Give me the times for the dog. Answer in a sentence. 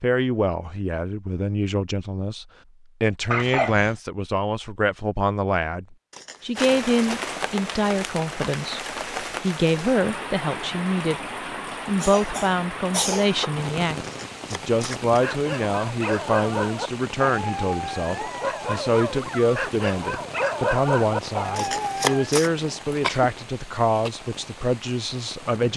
You can hear the dog from 15.2 to 22.3 s.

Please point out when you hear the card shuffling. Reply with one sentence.
You can hear the card shuffling from 6.1 to 6.8 s, from 14.0 to 15.1 s and from 21.6 to 22.5 s.